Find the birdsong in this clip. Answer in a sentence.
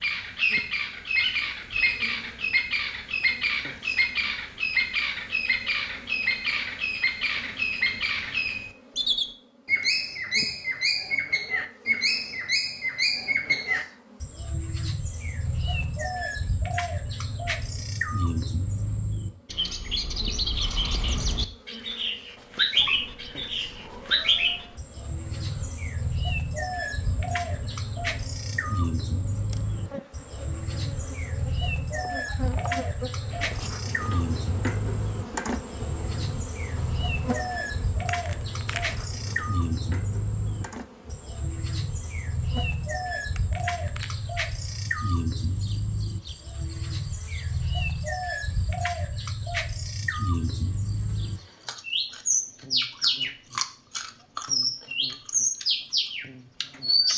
The birdsong can be heard from 0.0 to 57.1 s.